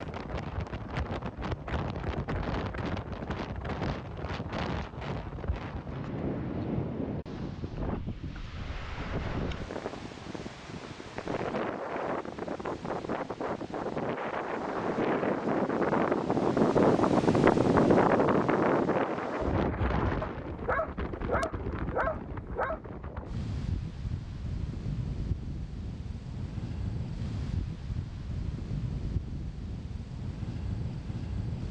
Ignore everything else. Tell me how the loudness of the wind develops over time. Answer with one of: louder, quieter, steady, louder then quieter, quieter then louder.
louder then quieter.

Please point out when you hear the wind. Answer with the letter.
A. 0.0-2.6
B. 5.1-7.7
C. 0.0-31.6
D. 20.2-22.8
C.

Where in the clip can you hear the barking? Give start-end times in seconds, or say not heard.
20.2-22.8.